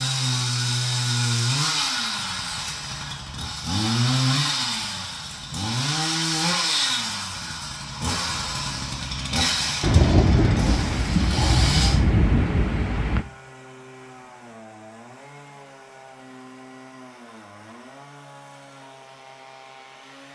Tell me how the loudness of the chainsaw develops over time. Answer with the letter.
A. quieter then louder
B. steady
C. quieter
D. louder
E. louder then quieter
C.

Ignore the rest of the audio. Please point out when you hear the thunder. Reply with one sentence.
The thunder can be heard from 9.8 to 13.2 s.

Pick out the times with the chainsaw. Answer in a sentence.
The chainsaw can be heard from 0.0 to 20.2 s.